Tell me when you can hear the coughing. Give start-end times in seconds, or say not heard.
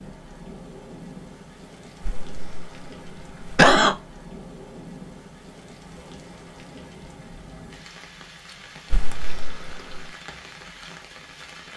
2.0-4.0, 8.9-10.1.